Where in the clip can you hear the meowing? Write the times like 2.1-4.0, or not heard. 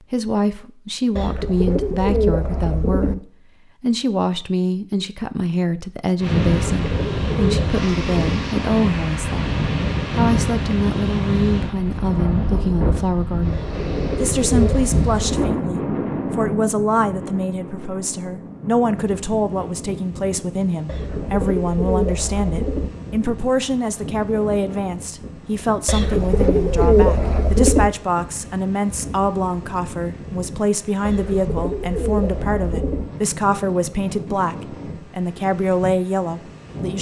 not heard.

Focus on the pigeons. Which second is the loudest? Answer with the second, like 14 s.
27 s.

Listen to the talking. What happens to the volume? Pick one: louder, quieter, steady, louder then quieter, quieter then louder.
steady.